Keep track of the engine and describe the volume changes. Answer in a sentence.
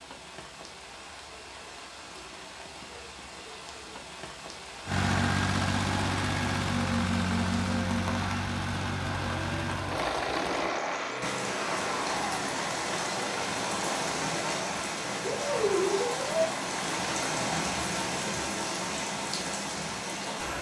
The volume of the engine goes down.